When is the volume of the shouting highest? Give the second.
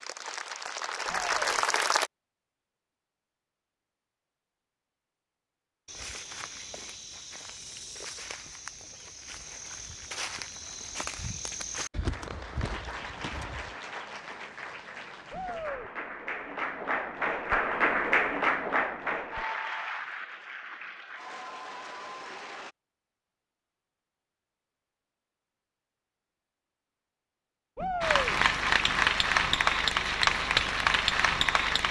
28 s.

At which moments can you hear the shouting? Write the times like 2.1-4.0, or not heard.
1.1-1.6, 15.3-15.9, 27.8-28.4.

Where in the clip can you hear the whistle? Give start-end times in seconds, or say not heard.
not heard.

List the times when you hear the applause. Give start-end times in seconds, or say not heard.
0.0-2.1, 12.1-22.8, 28.0-31.8.